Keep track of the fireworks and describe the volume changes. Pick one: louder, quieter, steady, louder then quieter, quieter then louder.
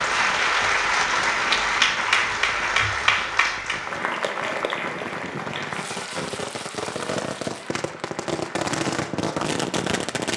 louder.